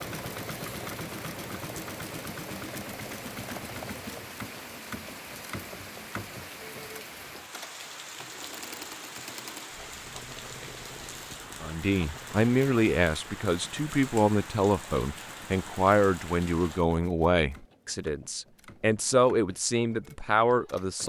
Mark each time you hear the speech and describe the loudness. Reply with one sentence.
The speech can be heard from 11.6 to 21.0 s, at a steady volume.